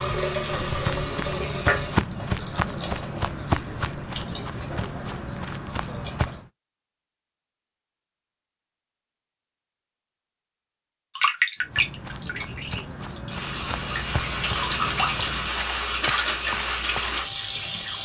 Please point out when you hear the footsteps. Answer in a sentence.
The footsteps can be heard from 0.4 to 6.5 s and from 11.6 to 17.3 s.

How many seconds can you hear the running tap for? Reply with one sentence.
The running tap can be heard for 13 seconds in total.